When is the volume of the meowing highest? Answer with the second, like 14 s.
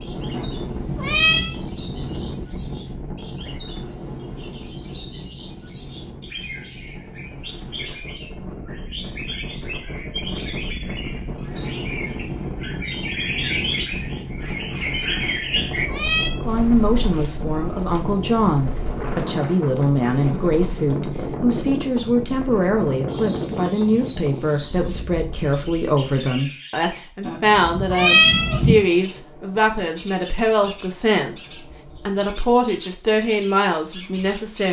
28 s.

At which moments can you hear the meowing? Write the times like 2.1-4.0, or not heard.
0.3-1.6, 15.2-16.4, 27.2-28.8.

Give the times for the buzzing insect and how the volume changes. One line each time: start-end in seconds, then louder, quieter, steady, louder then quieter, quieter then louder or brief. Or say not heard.
not heard.